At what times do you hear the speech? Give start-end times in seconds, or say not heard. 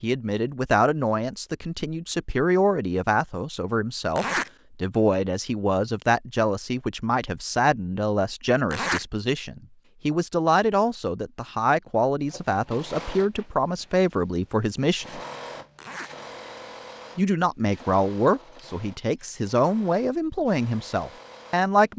0.0-15.2, 17.1-21.9.